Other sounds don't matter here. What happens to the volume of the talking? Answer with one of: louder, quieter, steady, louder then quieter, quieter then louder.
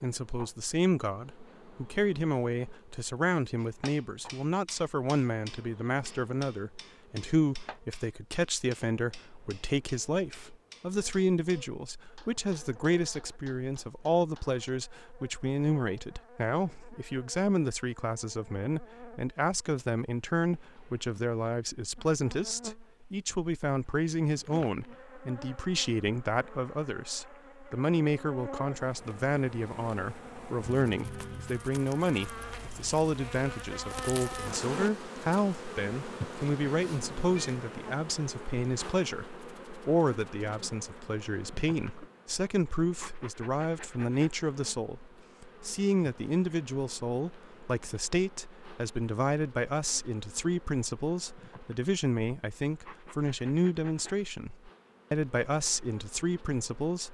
steady.